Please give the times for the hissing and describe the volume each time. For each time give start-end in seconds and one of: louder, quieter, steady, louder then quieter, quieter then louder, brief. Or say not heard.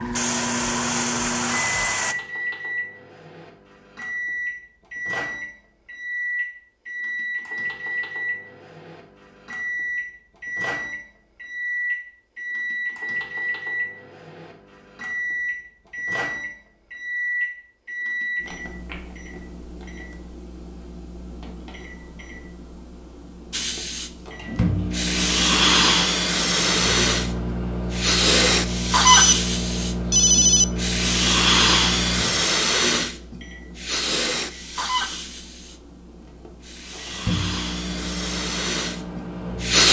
0.0-2.1 brief
23.5-39.8 quieter.